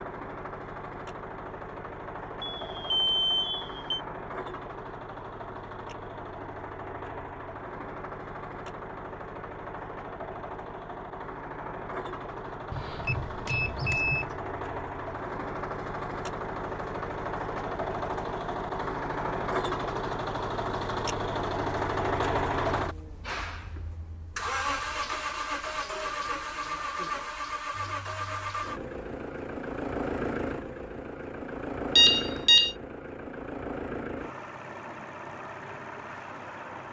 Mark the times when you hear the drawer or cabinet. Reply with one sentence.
You can't hear the drawer or cabinet here.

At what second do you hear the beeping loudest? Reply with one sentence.
The loudest moment of the beeping is at 32 seconds.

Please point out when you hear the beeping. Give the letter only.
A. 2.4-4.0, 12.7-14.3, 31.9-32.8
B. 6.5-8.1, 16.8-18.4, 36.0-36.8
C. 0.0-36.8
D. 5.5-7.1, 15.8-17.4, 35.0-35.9
A.